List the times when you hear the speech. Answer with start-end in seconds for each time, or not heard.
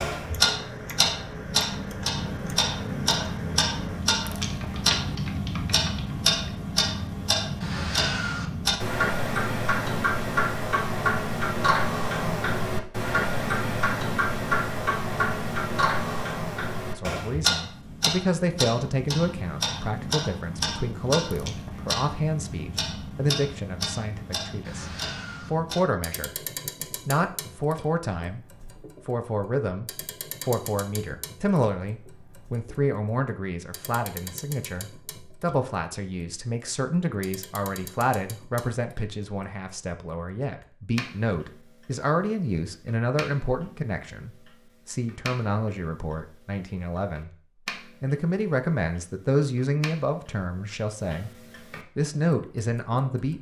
16.9-26.4, 27.1-47.3, 48.0-51.3, 52.0-53.3.